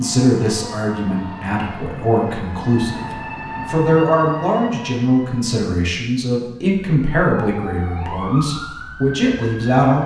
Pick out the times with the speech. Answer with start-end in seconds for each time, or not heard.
0.0-10.0.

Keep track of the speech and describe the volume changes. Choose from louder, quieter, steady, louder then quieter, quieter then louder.
steady.